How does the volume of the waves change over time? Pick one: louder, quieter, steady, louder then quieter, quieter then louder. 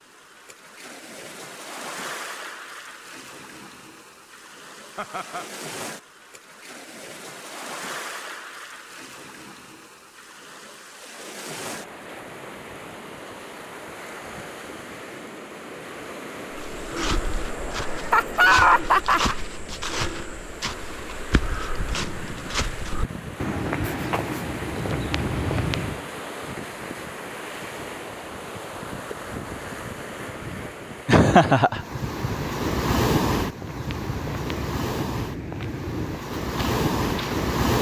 louder.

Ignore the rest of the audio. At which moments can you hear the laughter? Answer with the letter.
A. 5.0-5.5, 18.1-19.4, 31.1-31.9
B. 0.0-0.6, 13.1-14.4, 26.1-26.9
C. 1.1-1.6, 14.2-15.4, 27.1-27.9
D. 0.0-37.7
A.